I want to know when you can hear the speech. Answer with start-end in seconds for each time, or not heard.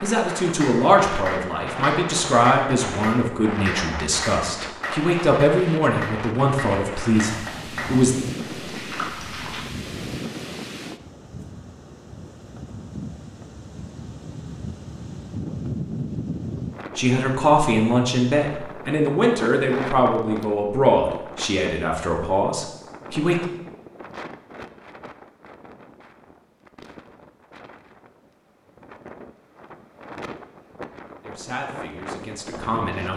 0.0-8.2, 16.9-23.4, 31.2-33.1.